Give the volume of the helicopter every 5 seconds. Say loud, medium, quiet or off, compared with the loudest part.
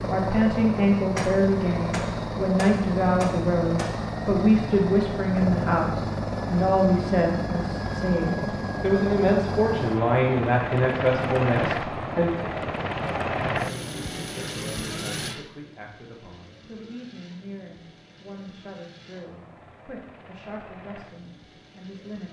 loud, loud, loud, quiet, quiet.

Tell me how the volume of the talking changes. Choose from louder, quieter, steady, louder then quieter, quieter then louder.
quieter.